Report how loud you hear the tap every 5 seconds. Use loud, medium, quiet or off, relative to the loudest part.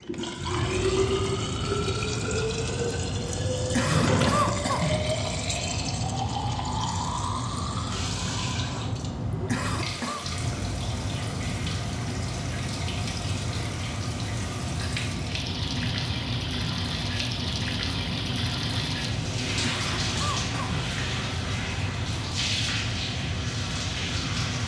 loud, loud, medium, loud, loud.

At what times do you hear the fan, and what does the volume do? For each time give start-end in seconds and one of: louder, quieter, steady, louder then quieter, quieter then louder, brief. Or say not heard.
0.0-24.6 steady.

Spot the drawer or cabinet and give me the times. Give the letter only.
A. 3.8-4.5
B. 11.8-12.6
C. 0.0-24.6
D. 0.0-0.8
A.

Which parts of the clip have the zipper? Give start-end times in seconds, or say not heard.
not heard.